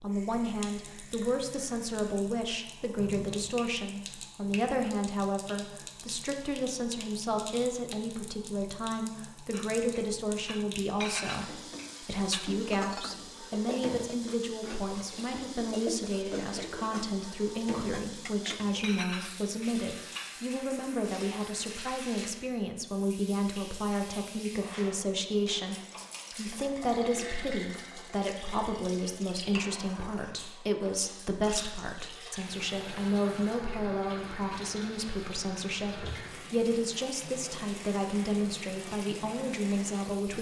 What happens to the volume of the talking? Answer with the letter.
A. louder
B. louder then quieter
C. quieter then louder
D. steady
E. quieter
D.